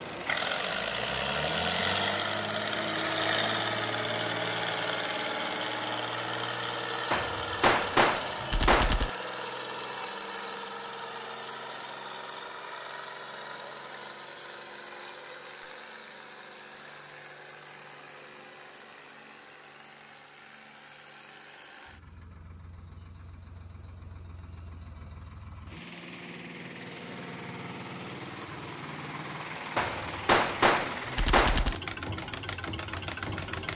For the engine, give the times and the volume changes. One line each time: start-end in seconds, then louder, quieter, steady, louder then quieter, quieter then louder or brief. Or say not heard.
0.0-33.7 quieter then louder.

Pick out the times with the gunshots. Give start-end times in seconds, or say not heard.
7.1-9.1, 29.8-31.8.